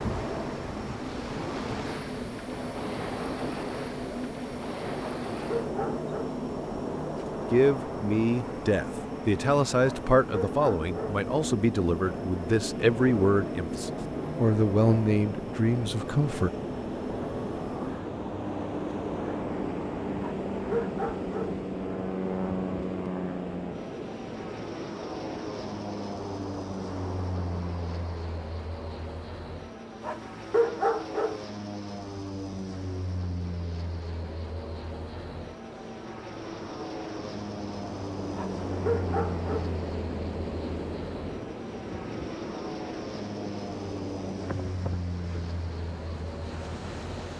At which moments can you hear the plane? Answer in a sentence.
You can hear the plane from 0.0 to 47.3 s.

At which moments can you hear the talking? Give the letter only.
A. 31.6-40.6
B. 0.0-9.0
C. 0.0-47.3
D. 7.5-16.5
D.